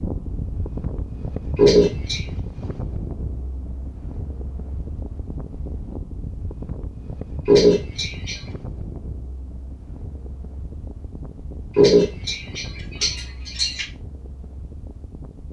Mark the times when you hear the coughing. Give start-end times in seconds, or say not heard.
1.6-2.2, 7.5-8.4, 11.8-13.8.